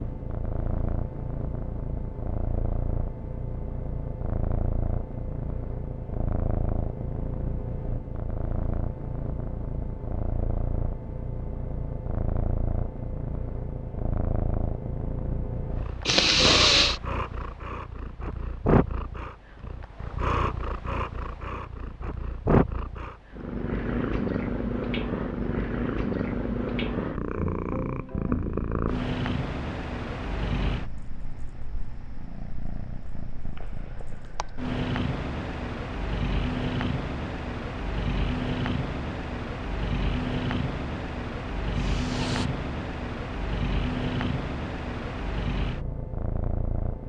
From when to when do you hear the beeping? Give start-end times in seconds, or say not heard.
not heard.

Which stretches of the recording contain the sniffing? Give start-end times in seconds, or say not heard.
16.1-16.9, 41.8-42.5.